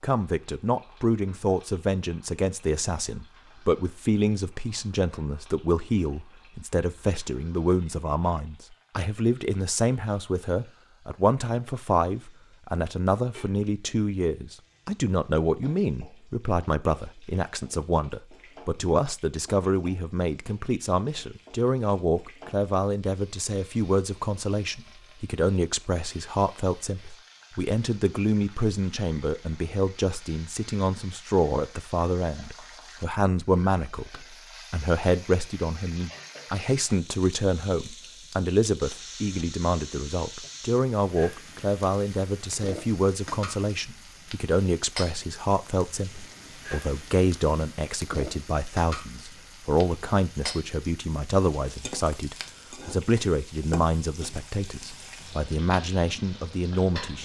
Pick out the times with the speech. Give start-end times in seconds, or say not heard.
0.0-57.2.